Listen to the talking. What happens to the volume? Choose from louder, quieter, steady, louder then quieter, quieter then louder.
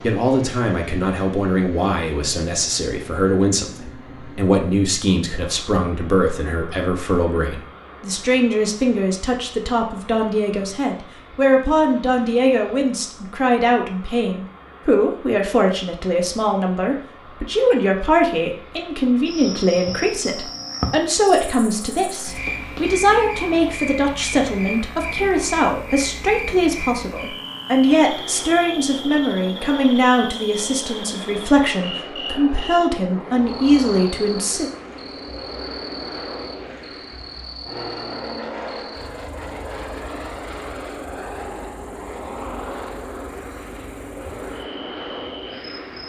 steady.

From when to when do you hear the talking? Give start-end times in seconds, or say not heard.
0.0-34.7.